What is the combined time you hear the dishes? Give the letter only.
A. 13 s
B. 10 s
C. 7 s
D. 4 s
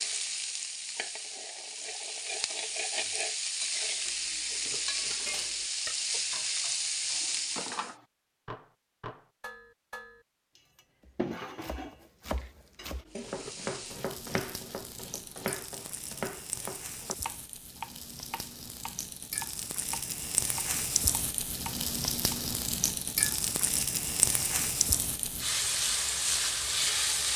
B.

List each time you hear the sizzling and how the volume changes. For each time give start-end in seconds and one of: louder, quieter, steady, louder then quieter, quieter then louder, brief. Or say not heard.
0.0-7.9 louder
13.1-27.3 louder.